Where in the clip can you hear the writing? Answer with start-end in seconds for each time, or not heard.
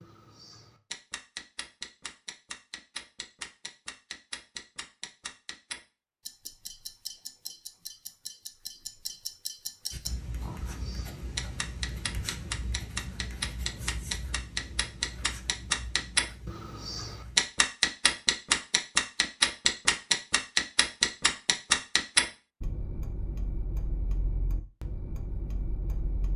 9.9-17.5.